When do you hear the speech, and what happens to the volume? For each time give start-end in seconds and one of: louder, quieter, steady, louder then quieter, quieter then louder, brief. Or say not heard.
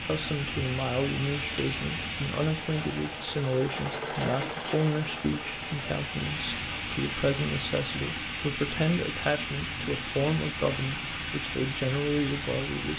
0.0-12.9 steady.